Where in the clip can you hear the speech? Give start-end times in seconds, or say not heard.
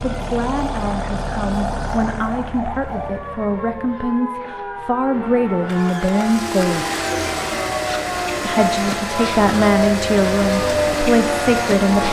0.0-6.8, 8.4-12.0.